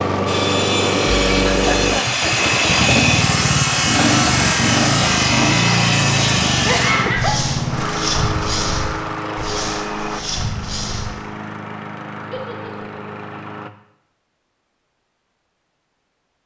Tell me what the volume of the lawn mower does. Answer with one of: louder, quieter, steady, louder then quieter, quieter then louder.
quieter.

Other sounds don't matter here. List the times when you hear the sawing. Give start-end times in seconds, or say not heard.
0.2-11.2.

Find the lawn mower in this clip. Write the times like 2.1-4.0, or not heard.
0.0-13.7.